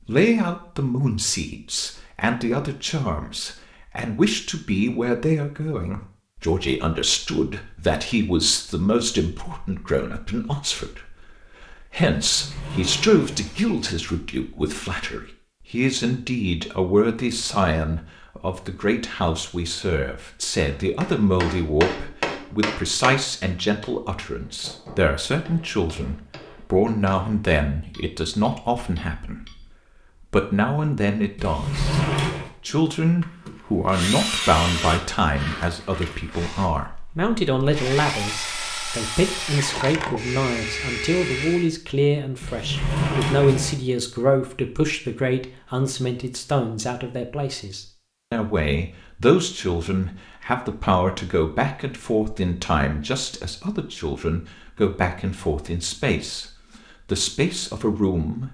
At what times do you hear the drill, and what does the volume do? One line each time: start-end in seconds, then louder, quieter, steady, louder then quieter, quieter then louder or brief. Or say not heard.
33.2-41.7 quieter then louder.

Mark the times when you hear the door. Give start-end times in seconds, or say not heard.
12.2-13.9, 31.4-32.5, 42.4-43.8.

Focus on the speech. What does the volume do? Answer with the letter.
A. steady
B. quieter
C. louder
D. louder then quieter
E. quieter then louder
A.